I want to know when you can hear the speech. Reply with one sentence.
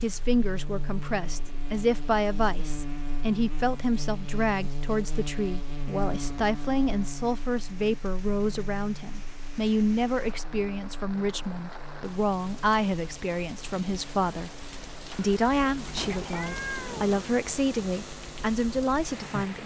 The speech can be heard from 0.0 to 14.5 s and from 15.2 to 19.6 s.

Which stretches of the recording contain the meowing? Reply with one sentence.
The meowing can be heard from 15.9 to 17.1 s.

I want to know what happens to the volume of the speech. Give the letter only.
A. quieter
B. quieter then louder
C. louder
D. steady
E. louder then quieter
D.